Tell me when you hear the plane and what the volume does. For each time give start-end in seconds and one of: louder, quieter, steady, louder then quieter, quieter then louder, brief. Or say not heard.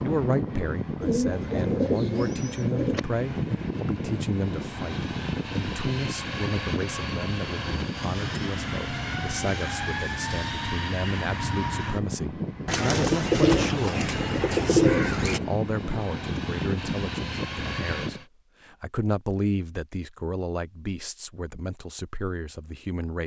0.0-18.2 steady.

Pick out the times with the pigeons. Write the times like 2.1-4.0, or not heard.
1.0-3.0, 12.7-15.4.